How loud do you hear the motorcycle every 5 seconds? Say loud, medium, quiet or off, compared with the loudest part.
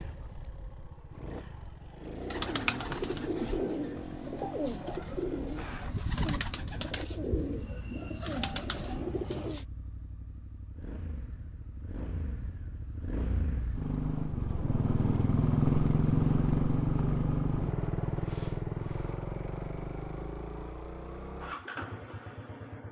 quiet, quiet, medium, loud, quiet.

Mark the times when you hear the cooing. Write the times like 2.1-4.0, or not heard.
2.1-9.7.